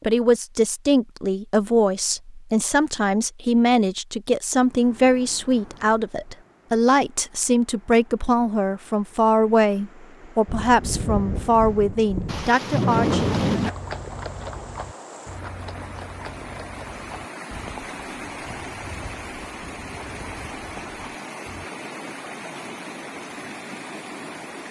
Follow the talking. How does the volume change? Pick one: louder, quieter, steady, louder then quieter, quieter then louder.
steady.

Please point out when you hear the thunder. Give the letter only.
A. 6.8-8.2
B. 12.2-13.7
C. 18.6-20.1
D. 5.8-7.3
B.